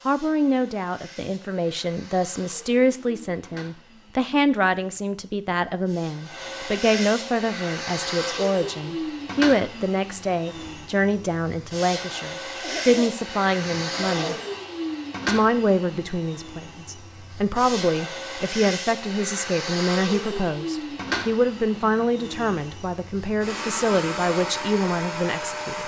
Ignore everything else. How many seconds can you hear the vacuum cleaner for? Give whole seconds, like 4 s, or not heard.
26 s.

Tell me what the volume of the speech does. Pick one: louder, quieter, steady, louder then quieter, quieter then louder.
steady.